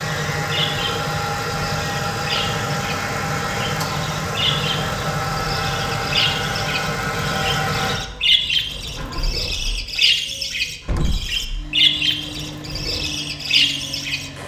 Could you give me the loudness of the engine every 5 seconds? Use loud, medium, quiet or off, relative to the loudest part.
loud, loud, quiet.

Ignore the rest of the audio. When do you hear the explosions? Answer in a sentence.
You can hear the explosions from 10.8 to 11.2 s.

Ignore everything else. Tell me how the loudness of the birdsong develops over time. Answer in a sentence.
The volume of the birdsong goes up.